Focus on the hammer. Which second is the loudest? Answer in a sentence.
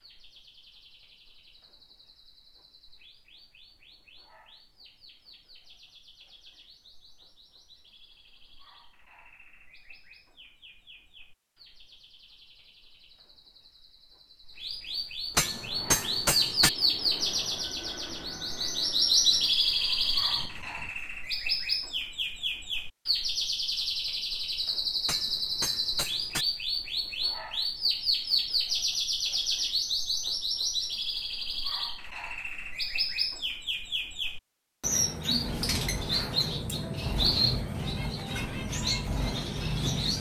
The loudest moment of the hammer is at 16 seconds.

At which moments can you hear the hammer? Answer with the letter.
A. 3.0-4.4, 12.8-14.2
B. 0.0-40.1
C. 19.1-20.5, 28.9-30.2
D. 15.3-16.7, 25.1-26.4
D.